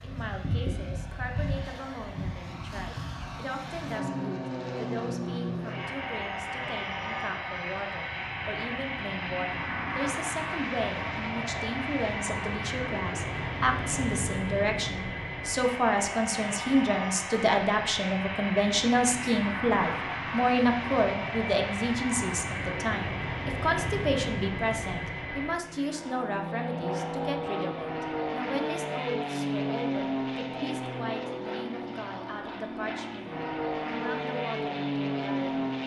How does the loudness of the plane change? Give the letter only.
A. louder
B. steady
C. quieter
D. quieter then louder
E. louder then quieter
B.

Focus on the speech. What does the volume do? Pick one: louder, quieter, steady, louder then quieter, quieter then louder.
louder then quieter.